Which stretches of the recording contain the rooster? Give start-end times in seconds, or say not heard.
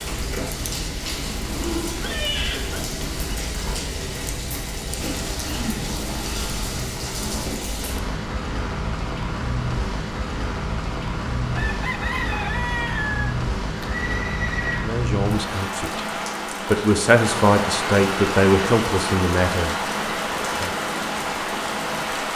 11.5-13.3.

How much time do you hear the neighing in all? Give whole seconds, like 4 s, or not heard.
2 s.